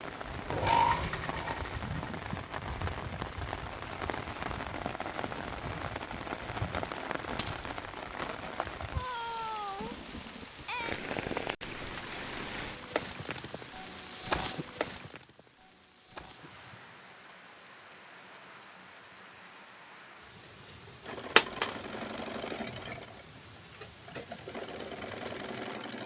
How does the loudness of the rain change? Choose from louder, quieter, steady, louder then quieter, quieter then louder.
quieter.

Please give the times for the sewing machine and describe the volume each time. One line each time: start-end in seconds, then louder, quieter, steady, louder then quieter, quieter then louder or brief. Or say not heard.
0.0-2.2 brief
21.0-26.0 quieter then louder.